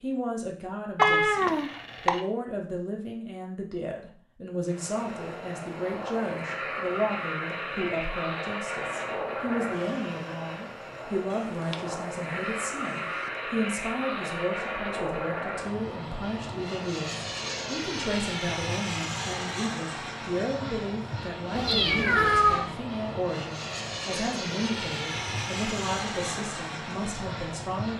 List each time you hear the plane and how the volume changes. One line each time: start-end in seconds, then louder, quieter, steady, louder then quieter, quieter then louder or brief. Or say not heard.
4.7-27.9 steady.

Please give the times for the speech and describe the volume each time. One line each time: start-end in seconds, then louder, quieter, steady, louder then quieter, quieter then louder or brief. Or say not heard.
0.0-27.9 steady.